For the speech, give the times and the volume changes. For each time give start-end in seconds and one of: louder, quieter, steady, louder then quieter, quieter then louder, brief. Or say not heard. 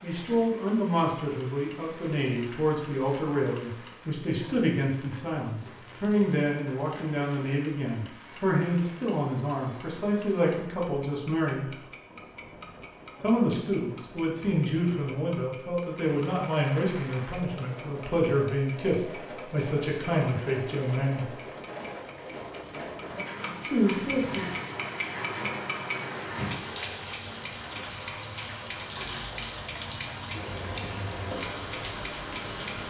0.0-11.7 steady
13.2-21.3 steady
23.6-24.5 brief.